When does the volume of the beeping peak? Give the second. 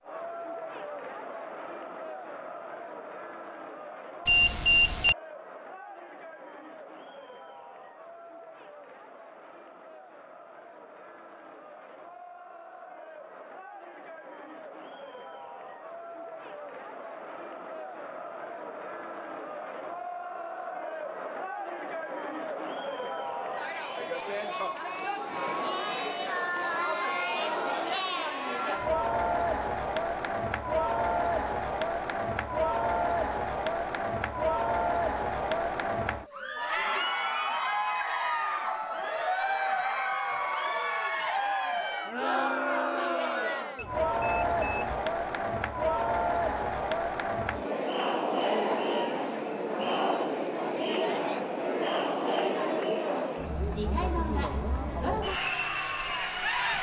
5 s.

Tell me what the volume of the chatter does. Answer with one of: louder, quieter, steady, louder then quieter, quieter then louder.
louder.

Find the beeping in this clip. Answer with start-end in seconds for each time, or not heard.
4.2-5.2, 43.8-45.0.